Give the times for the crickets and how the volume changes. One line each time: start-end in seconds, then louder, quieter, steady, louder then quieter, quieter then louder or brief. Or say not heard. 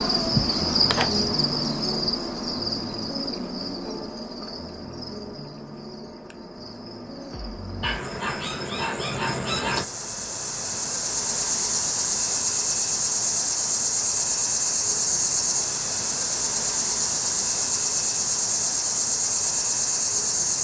0.0-20.5 quieter then louder.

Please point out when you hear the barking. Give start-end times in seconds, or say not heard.
7.8-9.8.